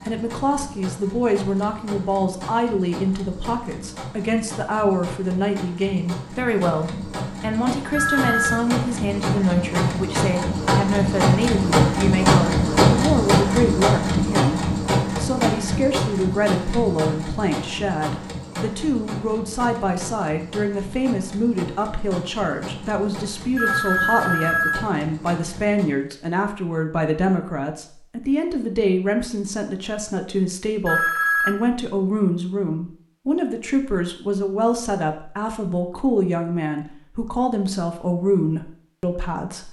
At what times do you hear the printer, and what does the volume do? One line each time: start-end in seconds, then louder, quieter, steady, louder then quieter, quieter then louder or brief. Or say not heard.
0.0-26.1 louder then quieter.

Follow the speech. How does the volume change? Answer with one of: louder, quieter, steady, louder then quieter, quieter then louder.
steady.